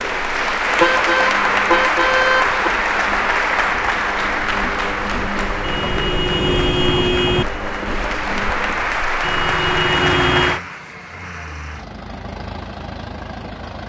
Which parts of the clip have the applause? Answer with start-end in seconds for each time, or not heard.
0.0-10.7.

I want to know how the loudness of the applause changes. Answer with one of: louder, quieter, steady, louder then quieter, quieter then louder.
quieter then louder.